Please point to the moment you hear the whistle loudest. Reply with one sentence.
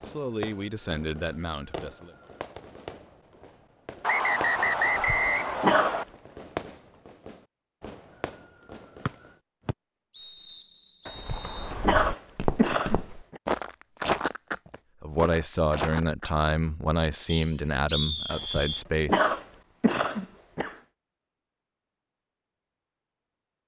The loudest moment of the whistle is at 5 seconds.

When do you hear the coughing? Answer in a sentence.
The coughing can be heard from 4.8 to 6.0 s, from 11.1 to 13.4 s and from 18.3 to 20.8 s.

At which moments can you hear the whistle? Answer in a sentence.
The whistle can be heard from 4.0 to 6.0 s, from 9.1 to 11.7 s and from 17.2 to 18.9 s.